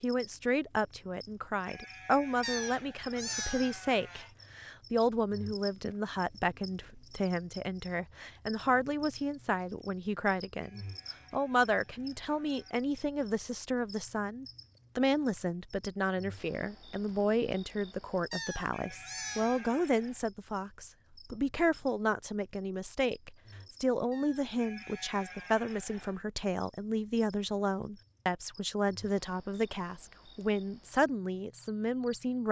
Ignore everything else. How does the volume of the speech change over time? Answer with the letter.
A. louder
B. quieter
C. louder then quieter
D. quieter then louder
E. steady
E.